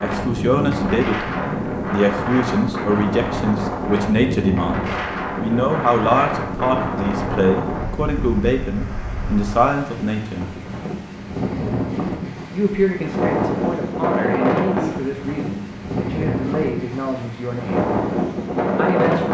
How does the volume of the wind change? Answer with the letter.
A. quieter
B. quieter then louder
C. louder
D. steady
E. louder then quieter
B.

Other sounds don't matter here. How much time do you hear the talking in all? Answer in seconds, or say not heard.
16 s.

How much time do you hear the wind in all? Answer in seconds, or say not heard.
19 s.